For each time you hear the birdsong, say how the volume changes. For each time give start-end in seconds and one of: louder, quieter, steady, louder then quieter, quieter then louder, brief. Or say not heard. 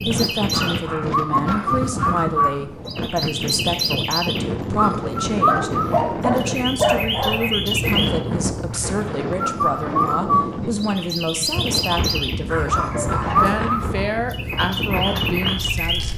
0.0-16.1 steady.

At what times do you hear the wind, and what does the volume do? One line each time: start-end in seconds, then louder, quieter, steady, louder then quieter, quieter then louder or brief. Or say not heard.
0.0-16.1 steady.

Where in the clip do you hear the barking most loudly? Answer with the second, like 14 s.
7 s.